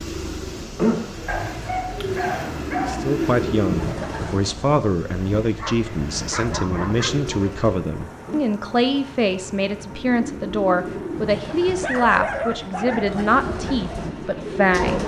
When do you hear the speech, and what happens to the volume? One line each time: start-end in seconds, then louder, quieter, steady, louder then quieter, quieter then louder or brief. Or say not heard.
2.8-15.0 steady.